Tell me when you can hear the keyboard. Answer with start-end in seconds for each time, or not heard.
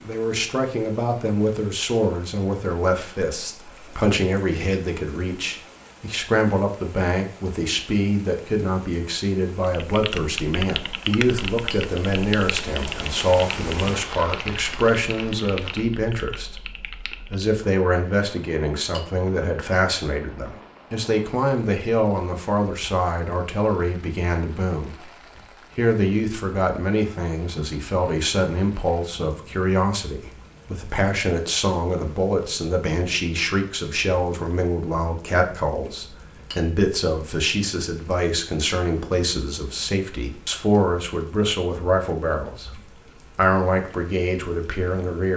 9.8-17.6.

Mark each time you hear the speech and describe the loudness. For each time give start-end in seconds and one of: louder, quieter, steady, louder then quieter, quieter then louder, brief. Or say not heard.
0.0-25.1 steady
25.8-45.3 steady.